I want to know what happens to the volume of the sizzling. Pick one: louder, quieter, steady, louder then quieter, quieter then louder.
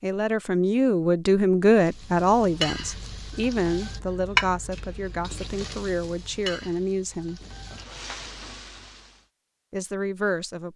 louder then quieter.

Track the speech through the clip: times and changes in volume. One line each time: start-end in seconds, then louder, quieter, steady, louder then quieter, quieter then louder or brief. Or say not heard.
0.0-7.4 quieter
9.7-10.7 brief.